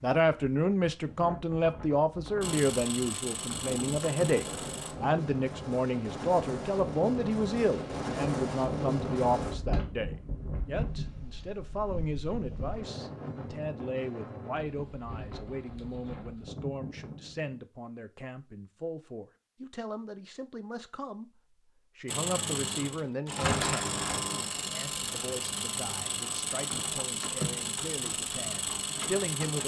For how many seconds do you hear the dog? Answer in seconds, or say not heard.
not heard.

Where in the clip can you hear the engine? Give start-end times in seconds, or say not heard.
2.4-5.0, 22.1-29.6.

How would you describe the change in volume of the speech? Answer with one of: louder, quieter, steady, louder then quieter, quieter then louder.
quieter.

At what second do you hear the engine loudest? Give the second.
24 s.